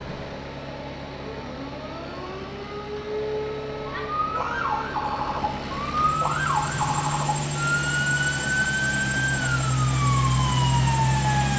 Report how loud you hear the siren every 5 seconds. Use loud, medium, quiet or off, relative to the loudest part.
medium, loud, loud.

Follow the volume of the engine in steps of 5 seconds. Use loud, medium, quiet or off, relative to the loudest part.
quiet, medium, loud.